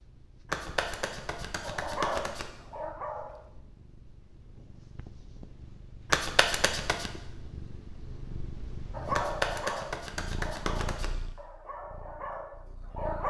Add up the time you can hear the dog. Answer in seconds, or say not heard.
6 s.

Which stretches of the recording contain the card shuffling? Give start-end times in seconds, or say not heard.
0.5-2.5, 6.1-7.1, 9.1-11.1.